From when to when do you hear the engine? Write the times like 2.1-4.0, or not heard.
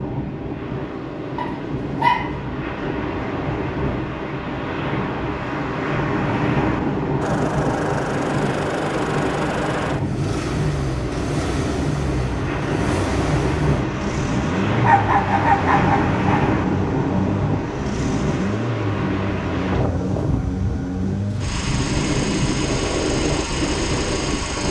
7.2-24.6.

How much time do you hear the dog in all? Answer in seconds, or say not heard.
3 s.